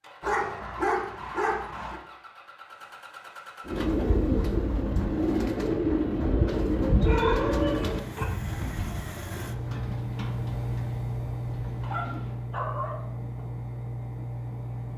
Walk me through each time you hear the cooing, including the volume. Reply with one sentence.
The cooing can be heard from 3.6 to 12.3 s, getting quieter.